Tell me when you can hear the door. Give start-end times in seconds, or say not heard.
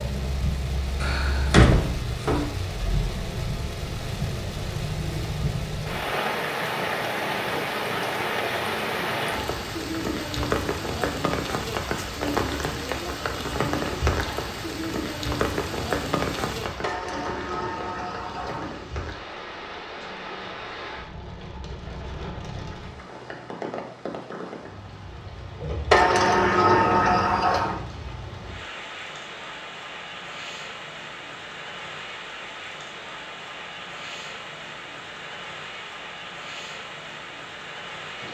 1.0-2.5, 16.8-18.7, 25.9-27.8.